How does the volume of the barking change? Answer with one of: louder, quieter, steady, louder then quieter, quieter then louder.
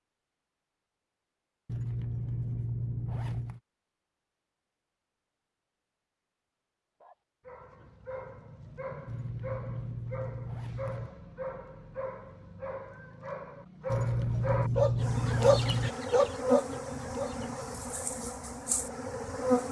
louder.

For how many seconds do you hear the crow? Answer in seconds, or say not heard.
not heard.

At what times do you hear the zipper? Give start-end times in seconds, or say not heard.
1.6-3.6, 9.1-11.1, 13.8-15.9.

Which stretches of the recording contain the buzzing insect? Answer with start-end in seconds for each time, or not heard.
15.0-19.6.